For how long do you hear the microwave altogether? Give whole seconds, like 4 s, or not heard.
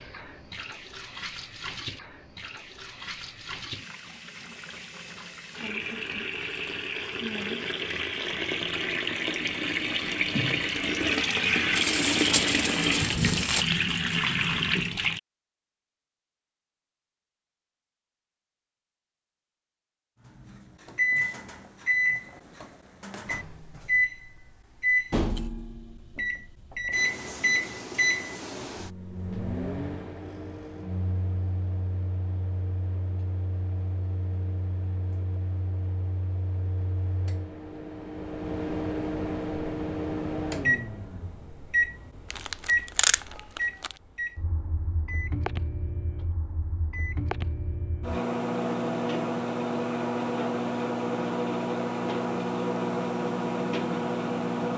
34 s.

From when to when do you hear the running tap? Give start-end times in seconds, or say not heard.
0.0-15.2.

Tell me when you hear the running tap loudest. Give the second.
12 s.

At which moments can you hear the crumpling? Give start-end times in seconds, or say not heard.
11.8-13.7, 42.3-44.0.